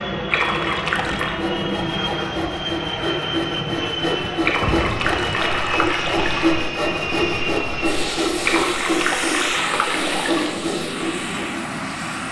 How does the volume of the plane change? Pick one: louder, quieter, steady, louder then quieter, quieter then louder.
steady.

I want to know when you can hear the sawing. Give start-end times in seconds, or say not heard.
1.2-11.4.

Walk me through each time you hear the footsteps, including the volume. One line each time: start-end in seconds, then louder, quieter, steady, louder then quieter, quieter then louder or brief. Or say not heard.
not heard.